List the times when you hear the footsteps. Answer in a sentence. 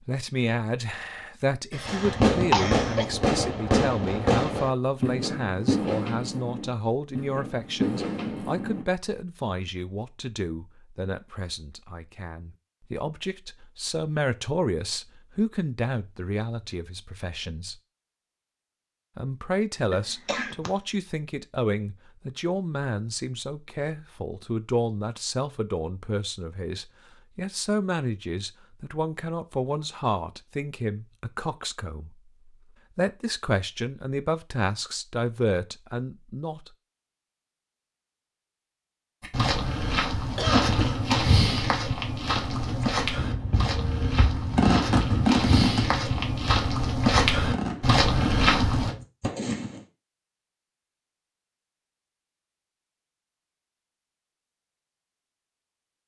You can hear the footsteps from 39.2 to 49.0 s.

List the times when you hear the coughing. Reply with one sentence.
You can hear the coughing from 1.7 to 3.0 s, from 19.9 to 20.7 s and from 40.4 to 41.0 s.